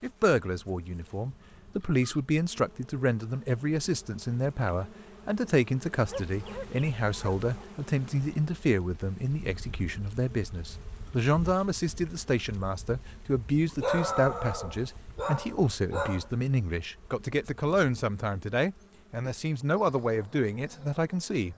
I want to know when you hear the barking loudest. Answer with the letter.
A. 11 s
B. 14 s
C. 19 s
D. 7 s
B.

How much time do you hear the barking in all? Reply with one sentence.
You can hear the barking for 4 seconds altogether.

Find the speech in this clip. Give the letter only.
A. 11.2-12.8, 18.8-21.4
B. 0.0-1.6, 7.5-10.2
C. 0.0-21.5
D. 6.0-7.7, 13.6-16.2
C.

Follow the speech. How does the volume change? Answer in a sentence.
The loudness of the speech stays about the same.